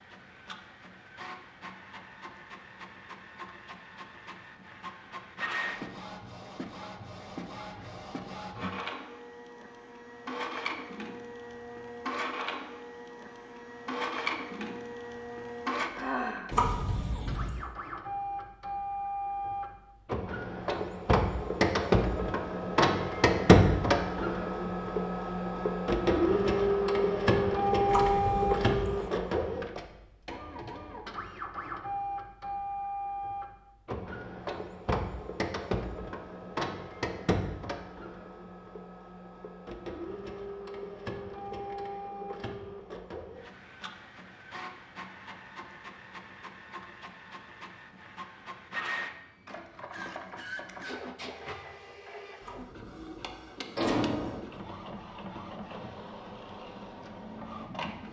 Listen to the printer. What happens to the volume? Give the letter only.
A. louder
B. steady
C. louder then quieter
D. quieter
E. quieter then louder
C.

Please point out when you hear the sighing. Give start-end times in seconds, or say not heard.
15.9-16.6.